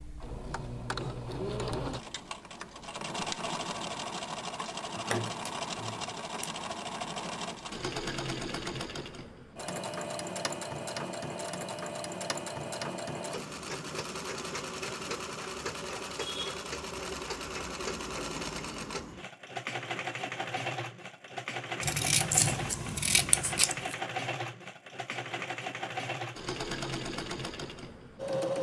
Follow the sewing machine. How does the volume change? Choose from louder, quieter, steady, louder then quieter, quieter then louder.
steady.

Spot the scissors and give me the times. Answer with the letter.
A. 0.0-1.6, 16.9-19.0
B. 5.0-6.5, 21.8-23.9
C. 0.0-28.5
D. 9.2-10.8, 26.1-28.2
B.